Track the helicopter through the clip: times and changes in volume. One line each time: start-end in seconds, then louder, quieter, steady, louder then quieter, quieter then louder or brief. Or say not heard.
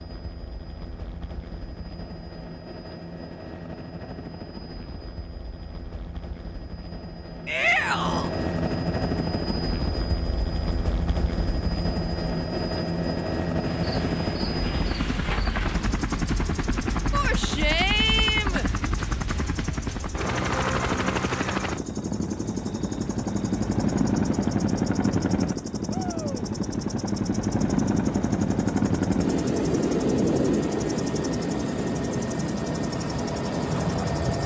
0.0-34.4 louder.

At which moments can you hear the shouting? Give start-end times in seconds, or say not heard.
7.5-8.3, 17.1-18.6, 25.9-26.4.